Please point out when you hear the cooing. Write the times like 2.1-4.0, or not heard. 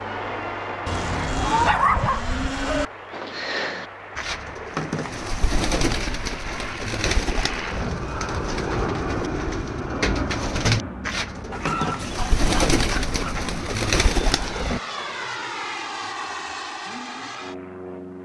3.1-14.8.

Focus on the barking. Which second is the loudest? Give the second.
2 s.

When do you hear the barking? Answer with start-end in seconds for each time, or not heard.
0.8-2.9, 11.5-13.4.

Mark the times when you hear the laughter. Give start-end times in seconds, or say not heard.
not heard.